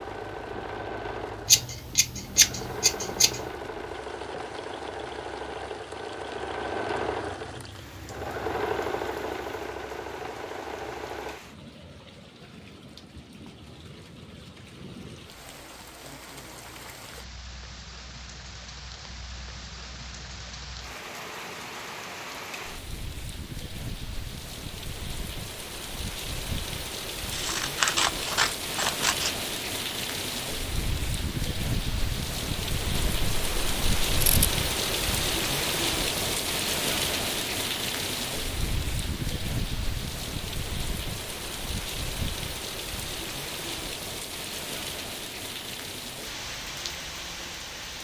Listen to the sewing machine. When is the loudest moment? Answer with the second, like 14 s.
9 s.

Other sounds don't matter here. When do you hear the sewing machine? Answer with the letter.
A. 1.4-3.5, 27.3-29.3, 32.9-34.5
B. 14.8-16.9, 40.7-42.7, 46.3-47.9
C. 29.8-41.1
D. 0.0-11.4
D.